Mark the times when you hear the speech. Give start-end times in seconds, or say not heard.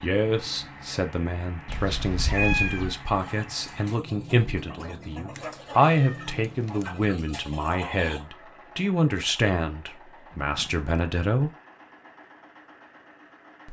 0.0-11.5.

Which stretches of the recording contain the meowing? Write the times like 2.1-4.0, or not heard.
1.6-3.0, 5.3-6.8, 10.4-10.8.